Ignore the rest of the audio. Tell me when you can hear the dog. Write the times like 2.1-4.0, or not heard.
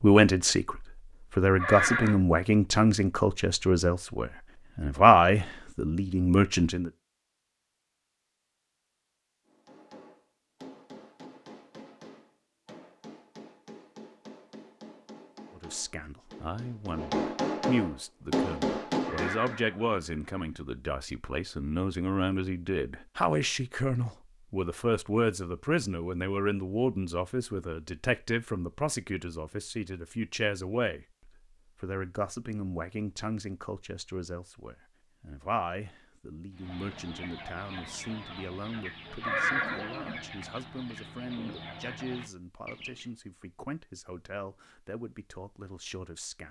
not heard.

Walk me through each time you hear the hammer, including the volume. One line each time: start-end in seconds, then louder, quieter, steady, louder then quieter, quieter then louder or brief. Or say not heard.
9.4-19.6 louder.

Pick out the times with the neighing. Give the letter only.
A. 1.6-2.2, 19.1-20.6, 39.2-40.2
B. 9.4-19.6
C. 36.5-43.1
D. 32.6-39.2
A.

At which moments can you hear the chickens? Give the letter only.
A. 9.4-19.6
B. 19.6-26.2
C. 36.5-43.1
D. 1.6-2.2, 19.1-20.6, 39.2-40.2
C.